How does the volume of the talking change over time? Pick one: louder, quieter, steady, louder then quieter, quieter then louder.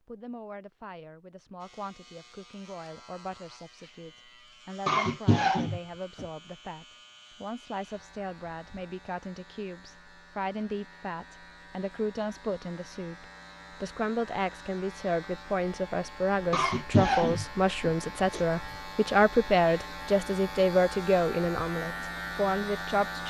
louder.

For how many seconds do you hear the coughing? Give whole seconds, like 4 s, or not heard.
3 s.